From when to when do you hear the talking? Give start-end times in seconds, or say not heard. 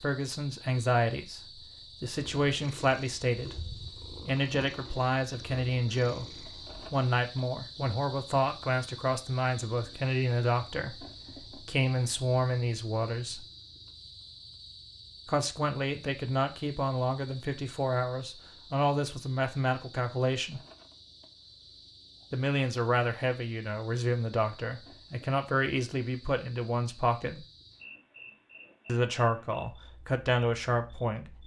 0.0-13.4, 15.2-20.6, 22.3-27.4, 28.9-31.4.